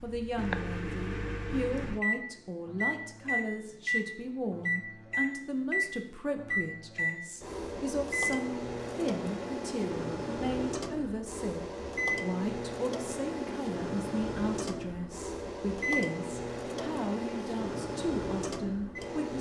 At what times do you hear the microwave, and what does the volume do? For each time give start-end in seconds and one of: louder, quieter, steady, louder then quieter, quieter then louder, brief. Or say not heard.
0.0-19.3 steady.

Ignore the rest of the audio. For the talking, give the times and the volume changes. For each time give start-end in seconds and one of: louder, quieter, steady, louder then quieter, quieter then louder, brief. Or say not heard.
0.0-19.3 steady.